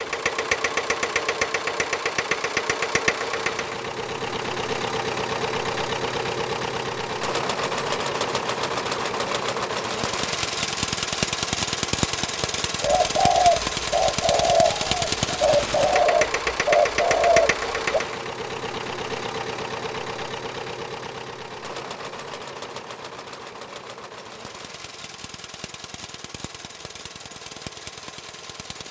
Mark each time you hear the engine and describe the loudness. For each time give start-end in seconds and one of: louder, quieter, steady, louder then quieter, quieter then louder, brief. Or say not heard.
0.0-28.8 quieter.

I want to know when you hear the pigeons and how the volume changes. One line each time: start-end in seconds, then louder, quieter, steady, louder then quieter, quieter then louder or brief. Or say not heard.
12.8-18.0 steady.